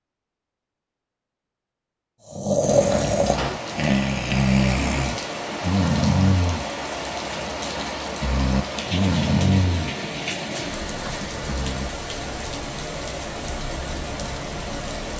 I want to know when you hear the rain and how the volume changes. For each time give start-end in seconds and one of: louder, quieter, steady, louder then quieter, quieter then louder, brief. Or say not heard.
2.5-15.1 steady.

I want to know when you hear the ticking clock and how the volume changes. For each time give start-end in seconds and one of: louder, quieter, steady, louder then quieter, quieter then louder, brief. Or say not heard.
not heard.